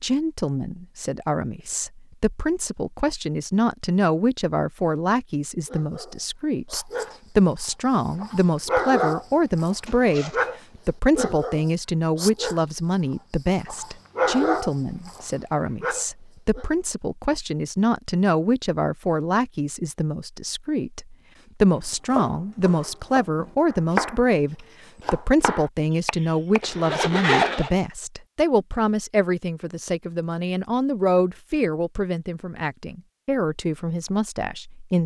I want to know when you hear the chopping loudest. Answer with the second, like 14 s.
24 s.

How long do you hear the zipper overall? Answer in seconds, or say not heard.
2 s.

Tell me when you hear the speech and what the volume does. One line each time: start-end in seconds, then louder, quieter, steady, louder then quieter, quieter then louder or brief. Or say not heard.
0.0-35.0 steady.